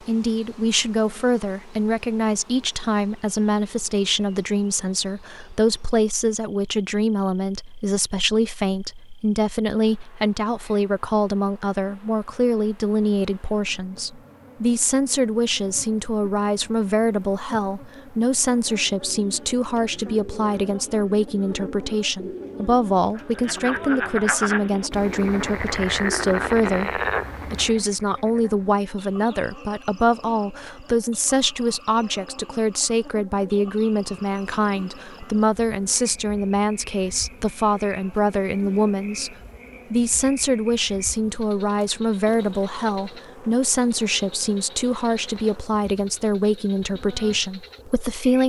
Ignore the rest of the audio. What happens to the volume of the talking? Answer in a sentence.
The loudness of the talking stays about the same.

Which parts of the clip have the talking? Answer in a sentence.
You can hear the talking from 0.1 to 48.4 s.